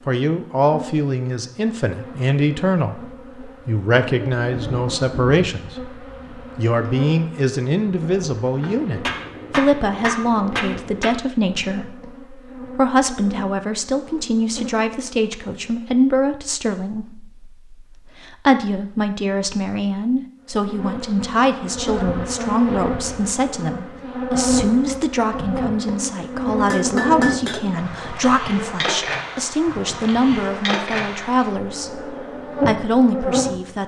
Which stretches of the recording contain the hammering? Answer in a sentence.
You can hear the hammering from 8.6 to 11.2 s and from 26.7 to 27.6 s.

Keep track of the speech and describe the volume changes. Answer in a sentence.
The volume of the speech stays about the same.